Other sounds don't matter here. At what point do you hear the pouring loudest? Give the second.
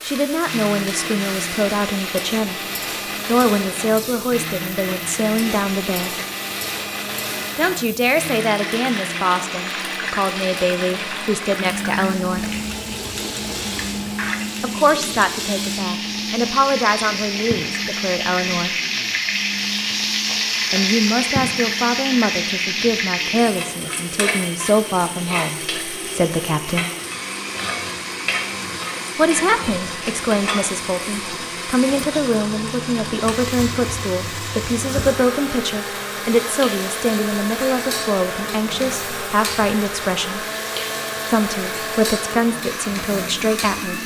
14 s.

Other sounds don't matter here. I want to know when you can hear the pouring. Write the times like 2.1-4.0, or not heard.
12.3-14.3.